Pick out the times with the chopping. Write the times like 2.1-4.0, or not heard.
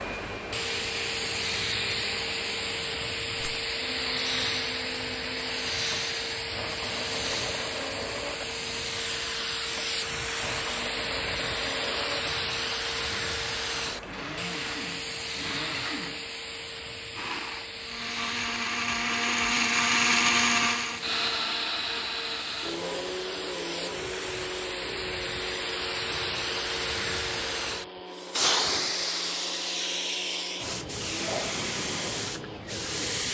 not heard.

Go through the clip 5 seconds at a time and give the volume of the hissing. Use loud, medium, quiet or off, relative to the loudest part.
loud, loud, loud, medium, medium, loud, loud.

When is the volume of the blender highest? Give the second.
20 s.